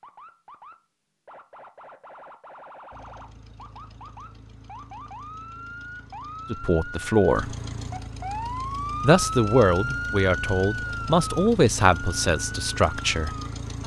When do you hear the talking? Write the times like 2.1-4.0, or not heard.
6.5-7.5, 9.0-13.3.